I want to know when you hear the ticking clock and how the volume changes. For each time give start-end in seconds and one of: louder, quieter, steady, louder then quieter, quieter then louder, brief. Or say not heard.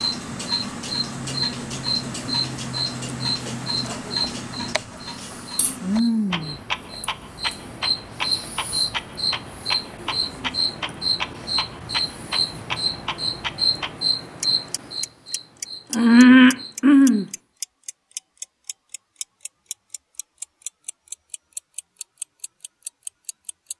0.0-23.7 quieter.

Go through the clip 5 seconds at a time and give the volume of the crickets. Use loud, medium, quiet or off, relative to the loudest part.
quiet, quiet, quiet, loud, off.